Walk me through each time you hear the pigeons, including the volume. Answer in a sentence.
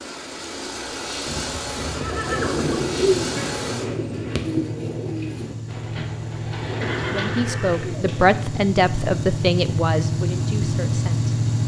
The pigeons can be heard from 2.2 to 8.4 s, getting quieter.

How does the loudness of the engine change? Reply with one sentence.
The volume of the engine goes up.